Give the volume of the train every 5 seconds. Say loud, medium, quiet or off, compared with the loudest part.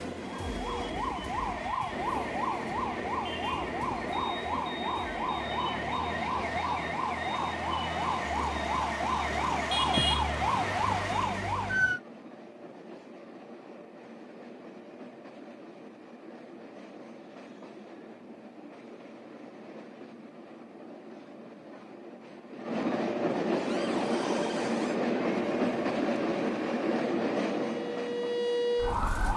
medium, medium, quiet, quiet, loud, loud.